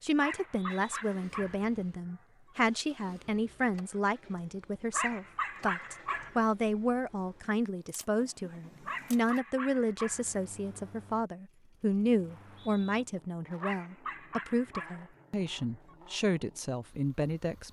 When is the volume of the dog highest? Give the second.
6 s.